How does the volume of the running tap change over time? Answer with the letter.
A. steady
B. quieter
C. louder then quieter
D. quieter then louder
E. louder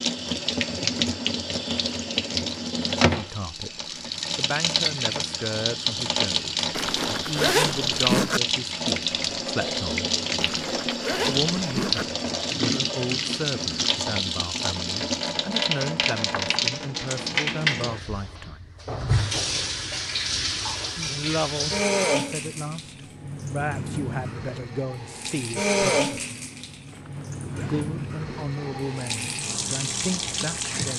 A.